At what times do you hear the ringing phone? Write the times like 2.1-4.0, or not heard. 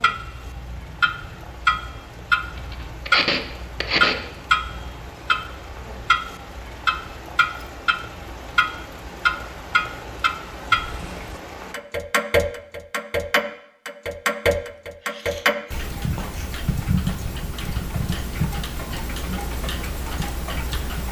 not heard.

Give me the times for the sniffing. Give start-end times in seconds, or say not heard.
2.5-4.2, 15.0-16.5.